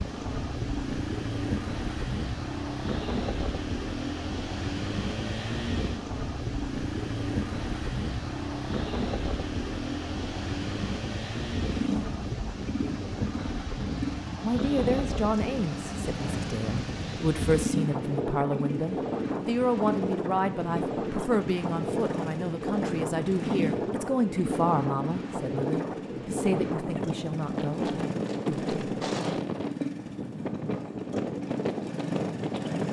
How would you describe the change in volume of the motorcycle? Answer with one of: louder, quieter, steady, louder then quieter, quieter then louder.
steady.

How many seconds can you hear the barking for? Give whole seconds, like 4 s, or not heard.
not heard.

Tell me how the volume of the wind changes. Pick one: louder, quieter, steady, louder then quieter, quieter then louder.
steady.